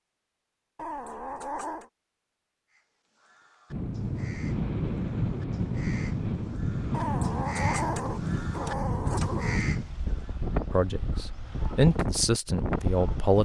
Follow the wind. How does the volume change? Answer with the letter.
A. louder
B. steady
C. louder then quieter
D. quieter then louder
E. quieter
B.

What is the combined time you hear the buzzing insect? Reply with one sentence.
The buzzing insect can't be heard in this clip.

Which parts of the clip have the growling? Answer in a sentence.
You can hear the growling from 0.8 to 1.9 s and from 6.9 to 9.7 s.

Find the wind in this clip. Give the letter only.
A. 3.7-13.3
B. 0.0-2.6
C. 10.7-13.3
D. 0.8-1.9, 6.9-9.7
A.